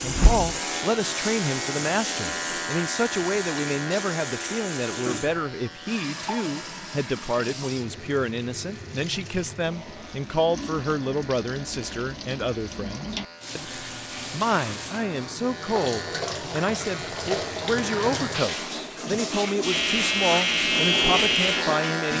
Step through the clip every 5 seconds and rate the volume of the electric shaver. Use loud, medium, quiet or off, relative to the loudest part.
medium, quiet, quiet, medium, loud.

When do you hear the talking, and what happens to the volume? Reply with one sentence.
You can hear the talking from 0.0 to 22.1 s, at a steady volume.